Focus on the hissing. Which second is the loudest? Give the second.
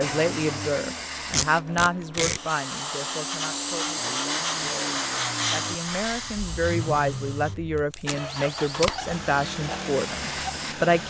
5 s.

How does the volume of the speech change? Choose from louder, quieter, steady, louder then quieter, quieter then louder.
quieter then louder.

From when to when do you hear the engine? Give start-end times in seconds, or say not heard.
0.0-11.0.